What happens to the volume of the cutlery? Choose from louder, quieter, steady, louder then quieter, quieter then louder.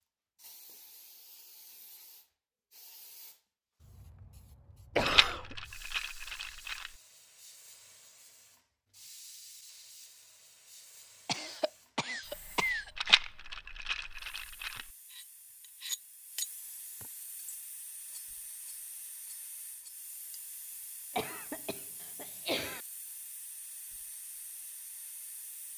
quieter.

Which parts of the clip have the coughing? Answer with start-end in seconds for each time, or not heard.
5.0-5.5, 11.2-13.2, 21.1-22.8.